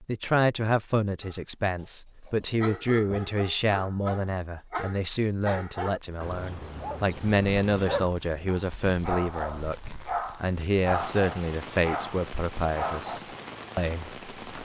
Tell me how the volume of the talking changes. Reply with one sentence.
The loudness of the talking stays about the same.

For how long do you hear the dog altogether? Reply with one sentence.
You can hear the dog for 12 seconds altogether.